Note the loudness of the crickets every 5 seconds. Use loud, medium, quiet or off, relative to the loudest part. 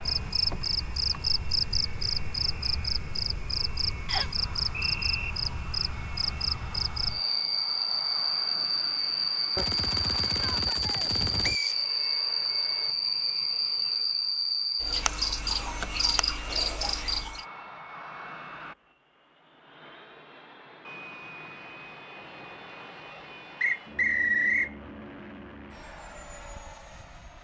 loud, loud, loud, loud, off, off.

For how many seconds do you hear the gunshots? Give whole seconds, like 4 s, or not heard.
2 s.